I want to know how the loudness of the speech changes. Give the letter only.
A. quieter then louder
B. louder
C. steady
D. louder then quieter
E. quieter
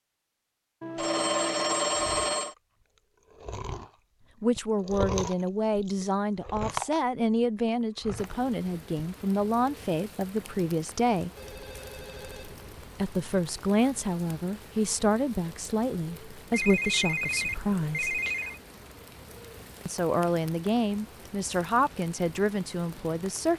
C.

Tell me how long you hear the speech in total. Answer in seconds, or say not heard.
16 s.